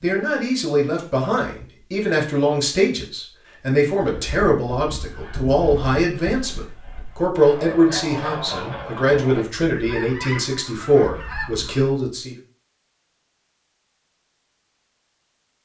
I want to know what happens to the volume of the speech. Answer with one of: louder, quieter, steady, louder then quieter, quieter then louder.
steady.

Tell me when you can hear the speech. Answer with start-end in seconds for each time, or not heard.
0.0-12.3.